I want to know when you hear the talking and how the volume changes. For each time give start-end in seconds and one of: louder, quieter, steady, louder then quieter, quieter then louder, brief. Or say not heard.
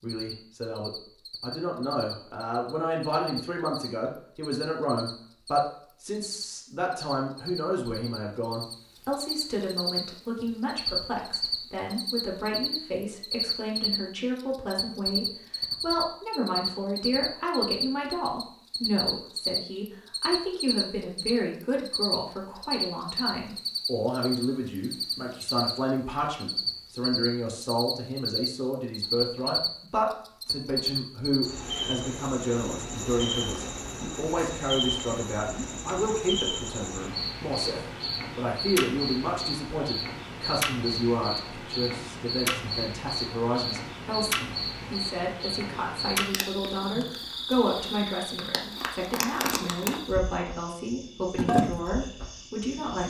0.0-53.0 steady.